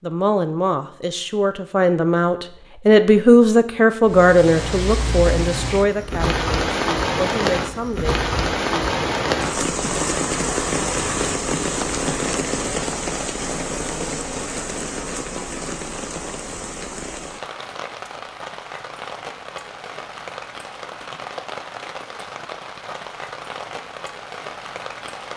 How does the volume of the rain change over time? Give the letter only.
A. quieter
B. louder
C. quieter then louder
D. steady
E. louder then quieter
A.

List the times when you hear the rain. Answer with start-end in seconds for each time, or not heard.
4.0-25.3.